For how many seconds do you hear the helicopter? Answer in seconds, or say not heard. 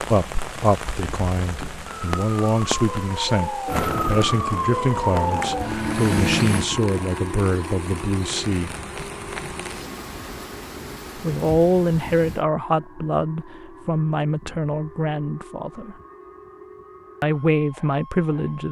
3 s.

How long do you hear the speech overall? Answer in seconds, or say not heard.
15 s.